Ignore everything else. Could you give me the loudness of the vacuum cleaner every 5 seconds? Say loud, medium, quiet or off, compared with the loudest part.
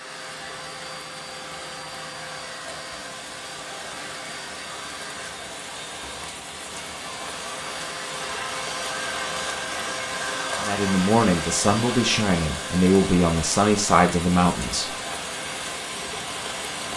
medium, loud, loud, medium.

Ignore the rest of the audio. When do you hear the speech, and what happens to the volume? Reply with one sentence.
You can hear the speech from 10.6 to 14.9 s, at a steady volume.